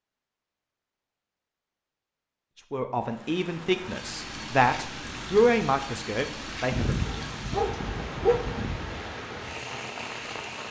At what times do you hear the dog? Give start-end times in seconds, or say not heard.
6.7-9.0.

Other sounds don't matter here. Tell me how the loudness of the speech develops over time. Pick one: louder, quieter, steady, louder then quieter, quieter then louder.
louder then quieter.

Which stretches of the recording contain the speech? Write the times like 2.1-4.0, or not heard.
2.5-7.0.